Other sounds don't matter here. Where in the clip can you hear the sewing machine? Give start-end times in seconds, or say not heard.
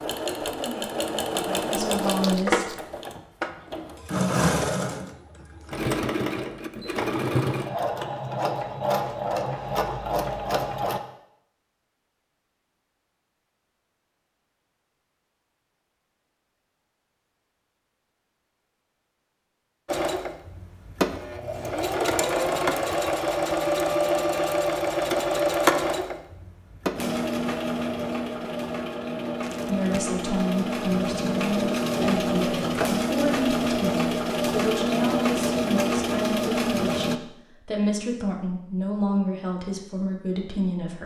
0.0-11.0, 19.9-37.2.